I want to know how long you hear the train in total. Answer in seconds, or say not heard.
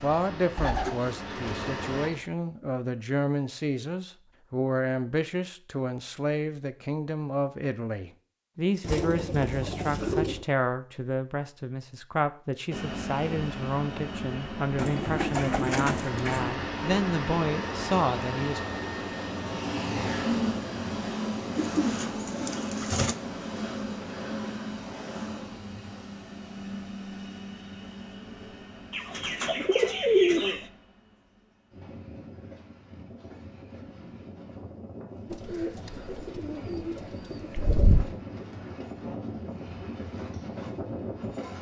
31 s.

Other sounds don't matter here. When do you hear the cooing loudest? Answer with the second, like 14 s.
30 s.